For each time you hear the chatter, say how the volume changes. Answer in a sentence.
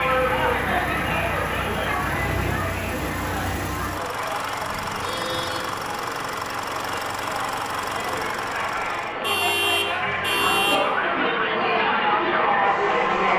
The chatter can be heard from 0.0 to 13.3 s, getting quieter then louder.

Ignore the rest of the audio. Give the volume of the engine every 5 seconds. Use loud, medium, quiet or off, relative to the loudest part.
loud, loud, medium.